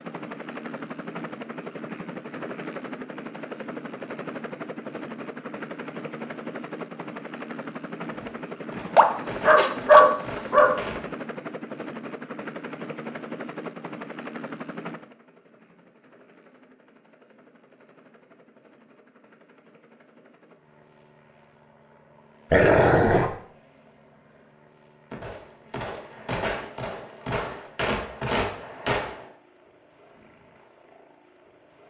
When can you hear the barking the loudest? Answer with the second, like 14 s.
10 s.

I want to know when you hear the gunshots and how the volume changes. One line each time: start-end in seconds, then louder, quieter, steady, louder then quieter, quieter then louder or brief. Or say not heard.
8.1-11.0 brief
25.1-29.2 louder.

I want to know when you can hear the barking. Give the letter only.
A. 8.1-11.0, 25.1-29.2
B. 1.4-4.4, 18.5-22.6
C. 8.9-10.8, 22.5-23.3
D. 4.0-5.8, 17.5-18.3
C.